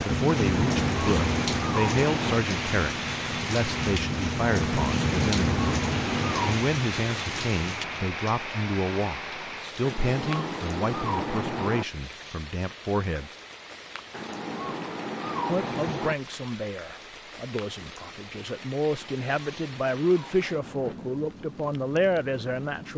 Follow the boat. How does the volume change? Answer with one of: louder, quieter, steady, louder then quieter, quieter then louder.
quieter then louder.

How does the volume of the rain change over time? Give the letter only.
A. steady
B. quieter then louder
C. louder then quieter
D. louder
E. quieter
E.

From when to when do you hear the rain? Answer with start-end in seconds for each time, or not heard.
0.0-22.9.